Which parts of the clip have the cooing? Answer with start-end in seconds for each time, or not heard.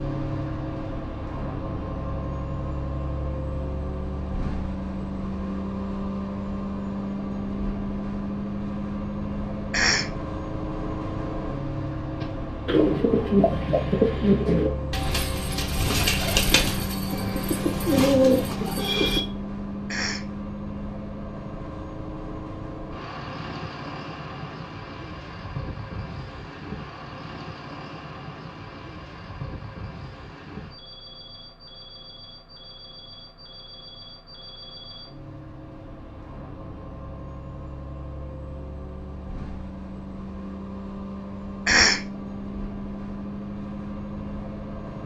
12.2-19.2.